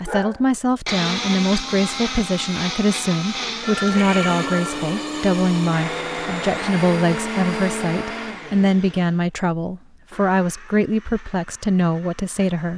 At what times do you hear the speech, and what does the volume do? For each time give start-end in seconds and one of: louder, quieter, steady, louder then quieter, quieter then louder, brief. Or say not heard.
0.0-12.7 steady.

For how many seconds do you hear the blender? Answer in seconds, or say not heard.
13 s.